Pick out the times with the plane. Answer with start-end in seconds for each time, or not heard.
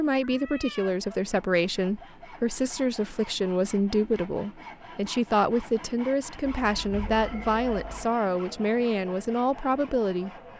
not heard.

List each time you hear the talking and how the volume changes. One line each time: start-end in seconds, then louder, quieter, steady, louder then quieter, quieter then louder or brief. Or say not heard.
0.0-10.3 steady.